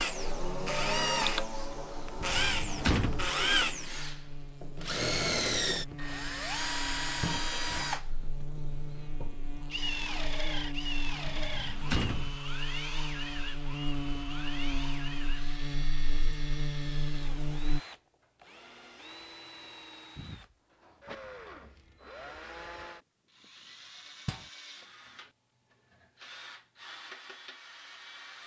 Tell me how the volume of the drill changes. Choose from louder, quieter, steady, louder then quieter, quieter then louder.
quieter.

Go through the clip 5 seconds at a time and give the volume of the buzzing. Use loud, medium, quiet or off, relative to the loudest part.
medium, medium, loud, loud, off, off.